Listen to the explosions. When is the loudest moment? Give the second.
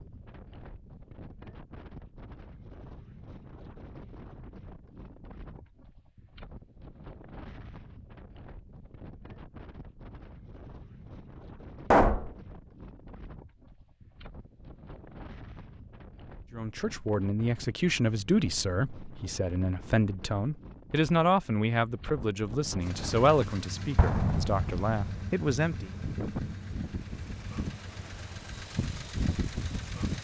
12 s.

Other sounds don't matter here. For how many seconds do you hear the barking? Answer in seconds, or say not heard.
not heard.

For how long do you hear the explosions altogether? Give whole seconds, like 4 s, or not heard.
2 s.